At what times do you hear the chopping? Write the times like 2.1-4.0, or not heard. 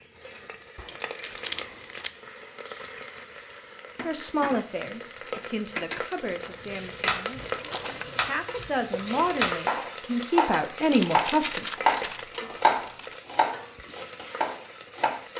6.6-15.2.